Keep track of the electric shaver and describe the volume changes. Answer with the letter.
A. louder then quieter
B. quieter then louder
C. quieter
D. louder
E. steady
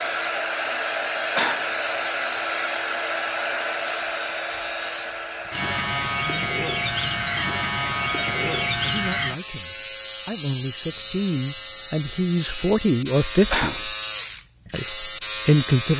D.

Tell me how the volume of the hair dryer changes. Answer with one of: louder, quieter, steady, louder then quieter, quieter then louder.
quieter.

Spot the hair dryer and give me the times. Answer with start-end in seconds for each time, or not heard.
0.0-8.7.